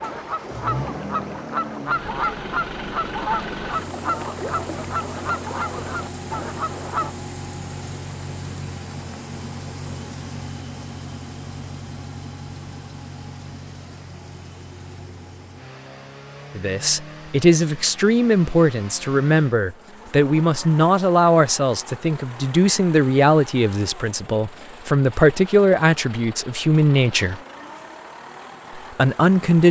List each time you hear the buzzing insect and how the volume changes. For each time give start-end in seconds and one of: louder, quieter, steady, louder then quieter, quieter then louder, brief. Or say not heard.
not heard.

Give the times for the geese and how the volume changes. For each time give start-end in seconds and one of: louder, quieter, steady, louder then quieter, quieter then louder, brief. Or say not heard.
0.0-7.2 steady.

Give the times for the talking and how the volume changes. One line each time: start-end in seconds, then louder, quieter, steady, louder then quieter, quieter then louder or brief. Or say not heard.
16.6-27.4 steady
28.8-29.6 brief.